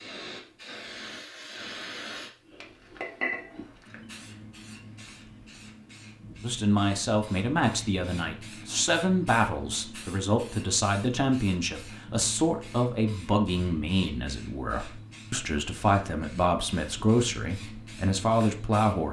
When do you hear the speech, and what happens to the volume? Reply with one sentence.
The speech can be heard from 6.4 to 19.0 s, at a steady volume.